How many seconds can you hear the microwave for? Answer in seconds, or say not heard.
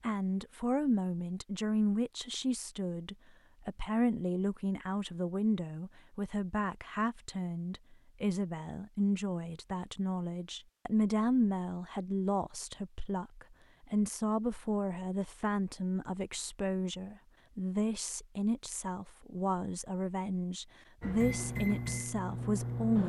2 s.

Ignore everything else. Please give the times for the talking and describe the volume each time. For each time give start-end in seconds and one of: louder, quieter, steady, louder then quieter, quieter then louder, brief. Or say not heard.
0.0-23.0 steady.